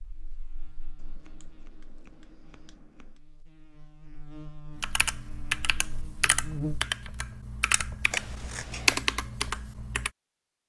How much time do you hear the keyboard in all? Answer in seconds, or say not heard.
5 s.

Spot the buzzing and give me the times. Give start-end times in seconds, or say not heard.
0.0-6.8.